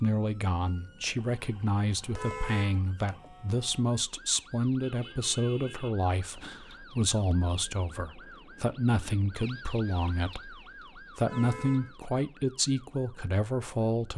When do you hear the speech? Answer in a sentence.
The speech can be heard from 0.0 to 14.1 s.